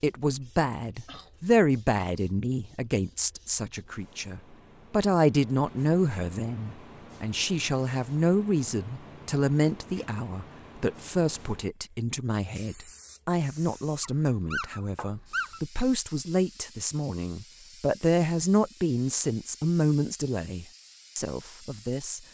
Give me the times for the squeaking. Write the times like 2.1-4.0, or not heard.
14.0-15.6.